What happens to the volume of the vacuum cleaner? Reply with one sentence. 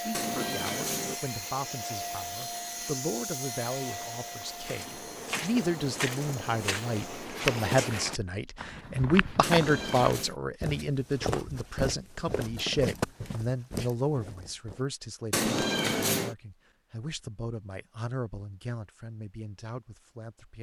The volume of the vacuum cleaner goes down.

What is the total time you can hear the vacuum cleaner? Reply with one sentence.
You can hear the vacuum cleaner for 7 seconds altogether.